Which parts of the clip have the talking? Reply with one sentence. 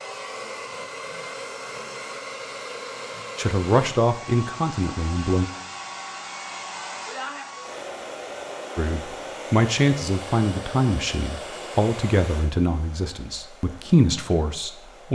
The talking can be heard from 3.4 to 5.5 s and from 8.8 to 15.1 s.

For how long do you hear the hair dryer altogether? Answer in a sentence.
You can hear the hair dryer for 15 seconds altogether.